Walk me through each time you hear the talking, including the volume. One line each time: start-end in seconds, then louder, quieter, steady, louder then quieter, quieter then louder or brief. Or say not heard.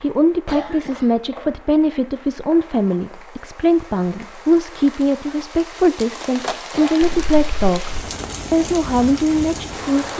0.0-10.1 steady.